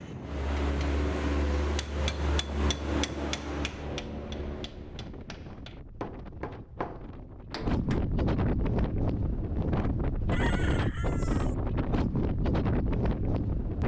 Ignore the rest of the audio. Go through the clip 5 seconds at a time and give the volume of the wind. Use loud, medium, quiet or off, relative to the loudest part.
quiet, loud, loud.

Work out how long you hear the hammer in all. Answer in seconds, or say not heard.
8 s.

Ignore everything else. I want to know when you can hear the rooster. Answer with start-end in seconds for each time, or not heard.
10.3-11.6.